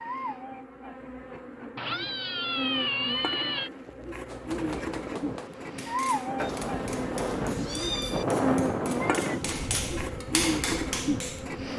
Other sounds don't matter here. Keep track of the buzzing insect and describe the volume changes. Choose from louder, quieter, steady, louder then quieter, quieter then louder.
louder.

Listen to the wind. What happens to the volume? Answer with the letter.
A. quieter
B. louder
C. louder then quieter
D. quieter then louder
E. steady
C.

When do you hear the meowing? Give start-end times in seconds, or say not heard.
1.8-3.7, 6.3-8.2.